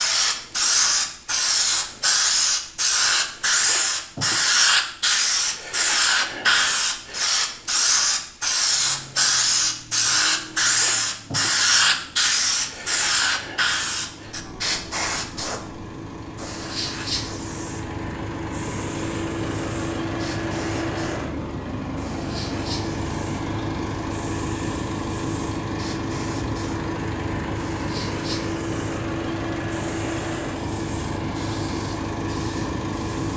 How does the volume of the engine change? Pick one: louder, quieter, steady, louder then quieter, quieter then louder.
louder.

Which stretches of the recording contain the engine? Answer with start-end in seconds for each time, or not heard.
8.7-33.3.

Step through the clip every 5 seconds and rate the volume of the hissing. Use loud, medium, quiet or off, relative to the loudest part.
loud, loud, loud, quiet, quiet, quiet, quiet.